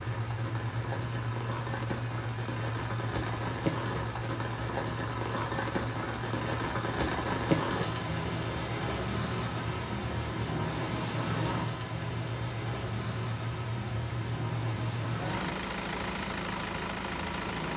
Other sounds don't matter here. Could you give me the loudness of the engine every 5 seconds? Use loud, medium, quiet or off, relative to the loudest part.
loud, medium, loud, loud.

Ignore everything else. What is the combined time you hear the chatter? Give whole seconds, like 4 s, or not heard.
not heard.